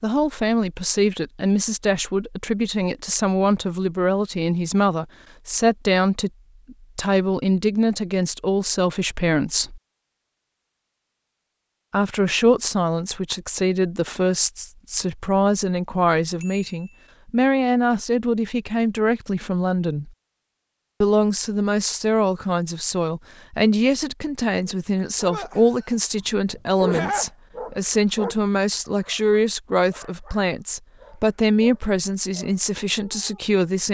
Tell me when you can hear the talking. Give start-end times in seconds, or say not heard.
0.0-9.8, 11.9-20.1, 21.0-33.8.